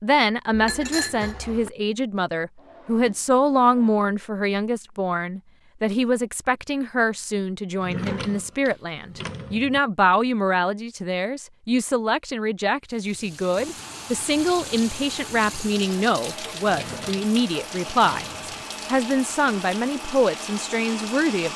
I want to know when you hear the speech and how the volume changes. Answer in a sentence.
The speech can be heard from 0.0 to 21.5 s, at a steady volume.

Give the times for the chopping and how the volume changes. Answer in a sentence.
The chopping can't be heard in this clip.